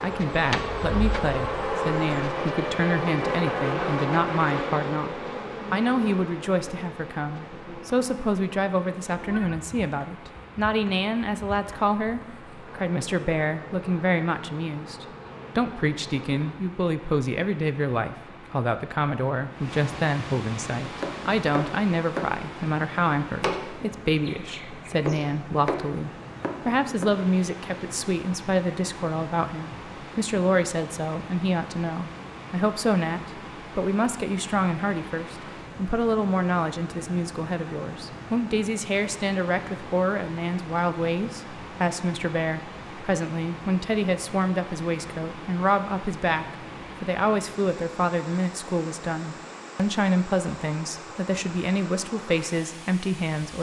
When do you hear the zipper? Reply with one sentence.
The zipper can't be heard in this clip.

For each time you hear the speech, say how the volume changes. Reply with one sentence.
You can hear the speech from 0.0 to 53.5 s, at a steady volume.